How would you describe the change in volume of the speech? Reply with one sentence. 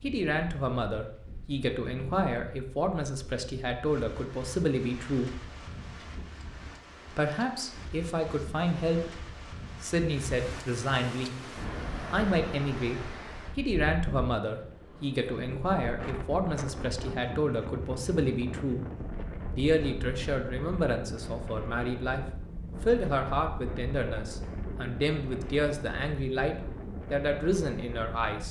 The volume of the speech stays about the same.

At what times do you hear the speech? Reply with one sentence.
The speech can be heard from 0.0 to 5.3 s, from 7.1 to 18.9 s and from 19.5 to 28.4 s.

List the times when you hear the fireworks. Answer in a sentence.
You can't hear the fireworks here.